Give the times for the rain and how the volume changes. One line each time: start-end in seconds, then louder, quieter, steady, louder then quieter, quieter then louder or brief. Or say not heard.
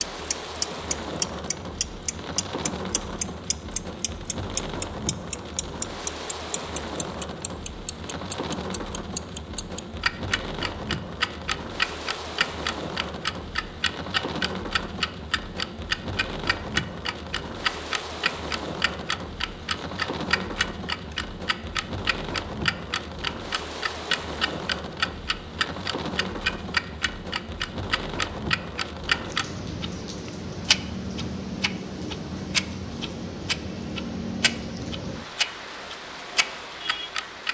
0.0-37.5 steady.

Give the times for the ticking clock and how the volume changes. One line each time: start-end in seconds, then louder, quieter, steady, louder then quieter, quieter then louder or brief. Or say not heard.
0.0-37.5 steady.